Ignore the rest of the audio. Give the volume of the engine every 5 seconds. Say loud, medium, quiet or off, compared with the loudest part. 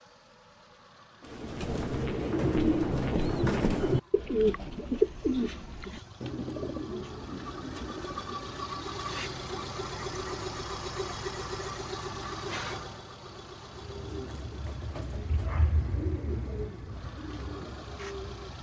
quiet, loud, loud, medium.